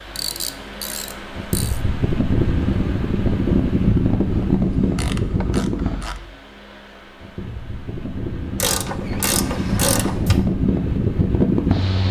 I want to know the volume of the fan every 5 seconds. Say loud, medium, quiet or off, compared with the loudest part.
loud, medium, loud.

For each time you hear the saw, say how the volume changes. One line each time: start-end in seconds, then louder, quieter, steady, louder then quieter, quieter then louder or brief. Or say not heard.
not heard.